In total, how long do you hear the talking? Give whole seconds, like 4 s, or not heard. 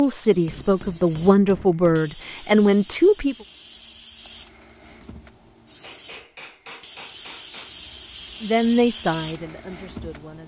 5 s.